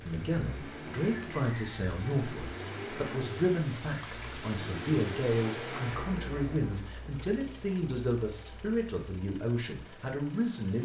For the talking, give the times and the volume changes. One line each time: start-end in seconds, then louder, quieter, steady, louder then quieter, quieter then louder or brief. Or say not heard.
0.0-10.7 steady.